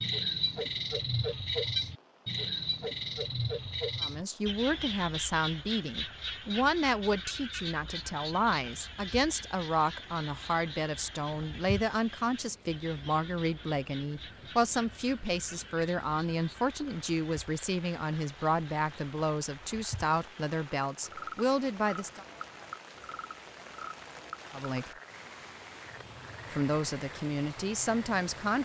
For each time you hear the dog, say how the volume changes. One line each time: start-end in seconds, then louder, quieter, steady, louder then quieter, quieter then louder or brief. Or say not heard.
not heard.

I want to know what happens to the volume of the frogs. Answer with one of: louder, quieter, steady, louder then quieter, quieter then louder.
quieter.